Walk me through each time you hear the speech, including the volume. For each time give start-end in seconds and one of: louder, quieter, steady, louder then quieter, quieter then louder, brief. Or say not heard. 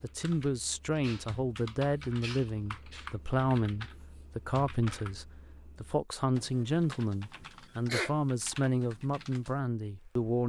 0.0-10.4 steady.